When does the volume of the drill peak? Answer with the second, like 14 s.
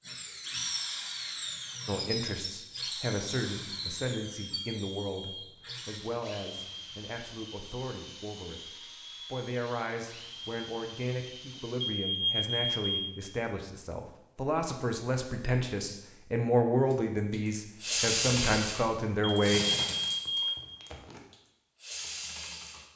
18 s.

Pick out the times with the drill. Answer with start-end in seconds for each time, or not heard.
0.0-11.9, 16.9-22.9.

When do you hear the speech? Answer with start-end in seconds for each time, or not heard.
1.9-19.6.